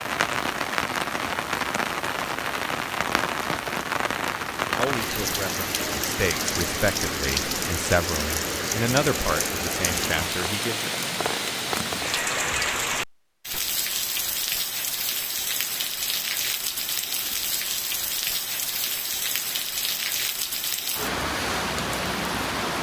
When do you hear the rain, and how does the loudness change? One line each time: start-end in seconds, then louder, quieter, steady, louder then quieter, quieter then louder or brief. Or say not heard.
0.0-22.7 steady.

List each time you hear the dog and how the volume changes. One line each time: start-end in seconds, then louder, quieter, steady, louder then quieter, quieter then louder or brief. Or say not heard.
not heard.